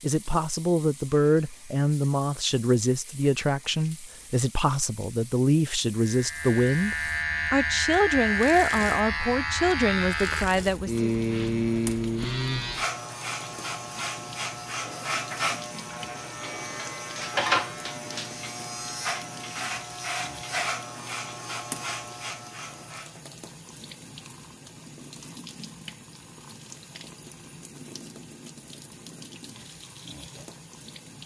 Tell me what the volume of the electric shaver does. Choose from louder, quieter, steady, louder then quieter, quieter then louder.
quieter.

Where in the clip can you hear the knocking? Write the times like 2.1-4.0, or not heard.
not heard.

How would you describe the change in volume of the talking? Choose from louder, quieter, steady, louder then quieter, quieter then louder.
steady.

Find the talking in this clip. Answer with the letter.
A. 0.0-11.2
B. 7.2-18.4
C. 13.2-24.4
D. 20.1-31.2
A.